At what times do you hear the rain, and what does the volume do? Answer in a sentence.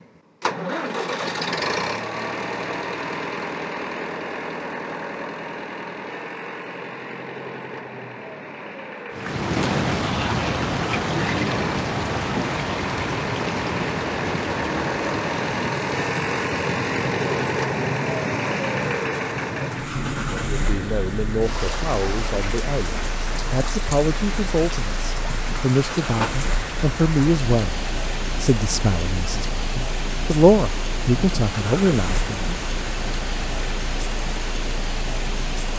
You can hear the rain from 9.1 to 35.7 s, getting quieter.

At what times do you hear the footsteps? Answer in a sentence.
The footsteps can't be heard in this clip.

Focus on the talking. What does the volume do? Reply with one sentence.
The loudness of the talking goes up.